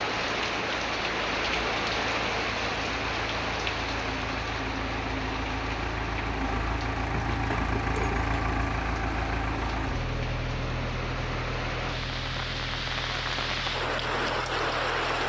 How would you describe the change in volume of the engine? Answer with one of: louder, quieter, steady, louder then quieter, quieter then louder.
louder then quieter.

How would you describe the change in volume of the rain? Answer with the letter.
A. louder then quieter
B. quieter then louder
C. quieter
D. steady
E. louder
B.